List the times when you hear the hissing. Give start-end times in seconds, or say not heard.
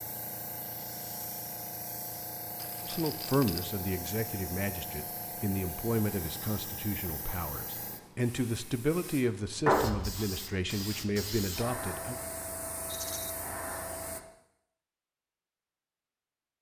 0.0-14.2.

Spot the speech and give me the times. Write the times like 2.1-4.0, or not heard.
2.8-12.2.